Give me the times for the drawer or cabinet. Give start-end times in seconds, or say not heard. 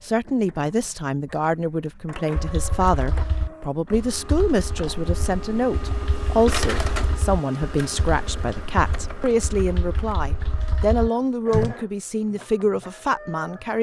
not heard.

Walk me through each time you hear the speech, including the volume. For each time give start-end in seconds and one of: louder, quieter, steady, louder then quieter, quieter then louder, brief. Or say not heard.
0.0-13.7 steady.